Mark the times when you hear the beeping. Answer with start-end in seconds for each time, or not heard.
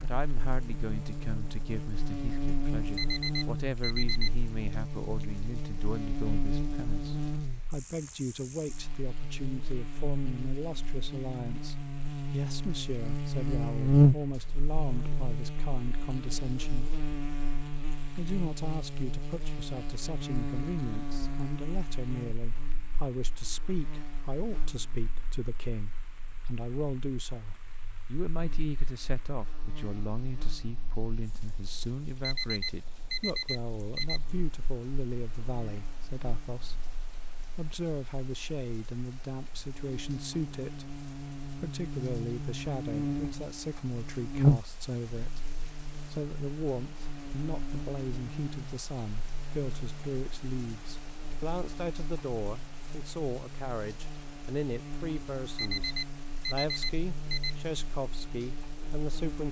3.0-4.3, 32.2-34.2, 55.5-57.5.